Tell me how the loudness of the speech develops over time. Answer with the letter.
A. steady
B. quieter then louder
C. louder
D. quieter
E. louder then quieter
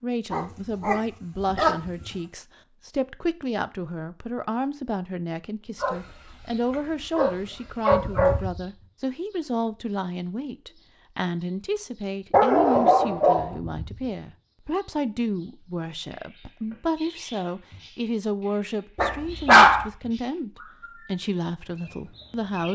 A.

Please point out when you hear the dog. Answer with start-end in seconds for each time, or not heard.
0.3-2.0, 5.8-8.4, 12.3-13.6, 18.9-19.9.